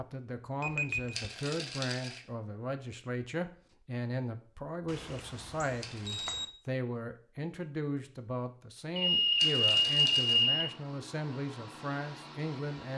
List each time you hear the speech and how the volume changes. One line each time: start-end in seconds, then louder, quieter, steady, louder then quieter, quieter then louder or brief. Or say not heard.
0.0-12.9 steady.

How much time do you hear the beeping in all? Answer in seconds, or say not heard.
4 s.